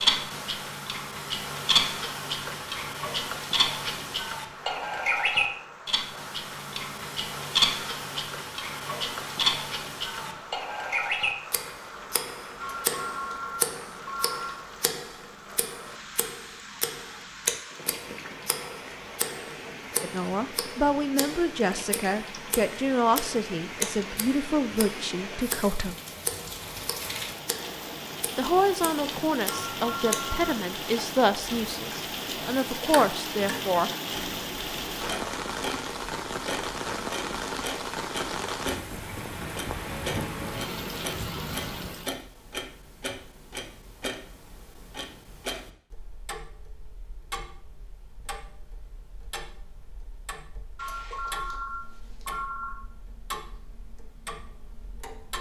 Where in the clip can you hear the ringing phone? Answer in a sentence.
The ringing phone can be heard from 12.6 to 14.6 s, from 29.4 to 30.4 s and from 50.8 to 52.8 s.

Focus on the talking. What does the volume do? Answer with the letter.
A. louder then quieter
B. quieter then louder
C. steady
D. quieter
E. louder
C.